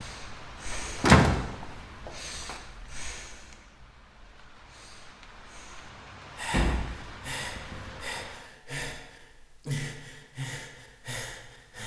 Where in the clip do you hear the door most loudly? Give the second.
1 s.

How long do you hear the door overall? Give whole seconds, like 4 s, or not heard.
3 s.